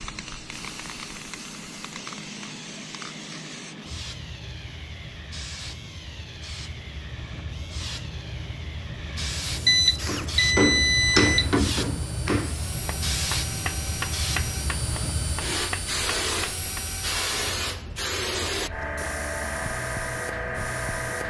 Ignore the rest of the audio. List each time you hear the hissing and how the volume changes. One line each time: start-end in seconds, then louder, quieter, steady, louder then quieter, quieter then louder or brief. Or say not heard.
0.0-21.2 louder.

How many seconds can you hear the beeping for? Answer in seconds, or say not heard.
2 s.